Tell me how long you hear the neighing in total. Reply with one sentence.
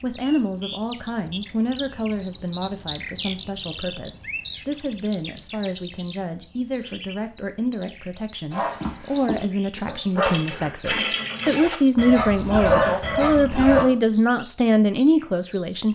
You can hear the neighing for 2 seconds altogether.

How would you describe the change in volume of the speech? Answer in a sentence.
The loudness of the speech goes up.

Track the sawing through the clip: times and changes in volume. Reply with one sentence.
The sawing can't be heard in this clip.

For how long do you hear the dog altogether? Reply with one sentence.
You can hear the dog for 5 seconds altogether.